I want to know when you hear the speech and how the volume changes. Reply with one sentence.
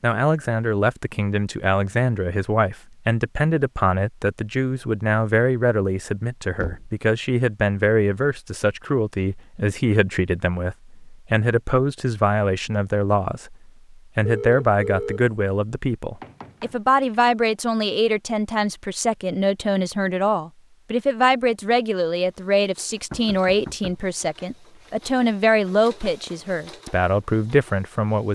The speech can be heard from 0.0 to 28.3 s, at a steady volume.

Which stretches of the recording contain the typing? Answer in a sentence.
The typing can't be heard in this clip.